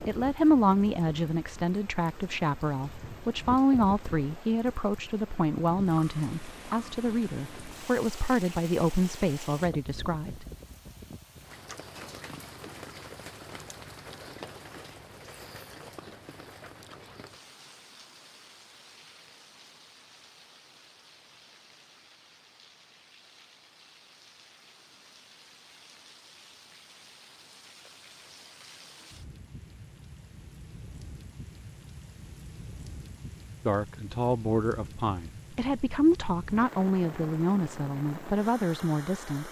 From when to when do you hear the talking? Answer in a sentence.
You can hear the talking from 0.0 to 10.4 s and from 33.6 to 39.4 s.